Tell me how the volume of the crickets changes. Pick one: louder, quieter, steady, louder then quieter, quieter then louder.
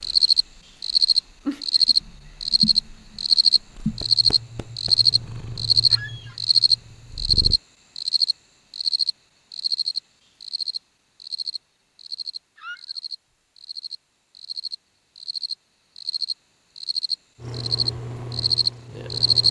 quieter then louder.